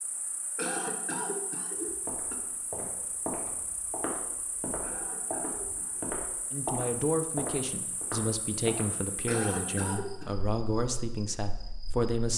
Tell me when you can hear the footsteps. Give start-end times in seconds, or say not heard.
1.9-8.8.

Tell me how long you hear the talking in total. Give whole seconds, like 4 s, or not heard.
6 s.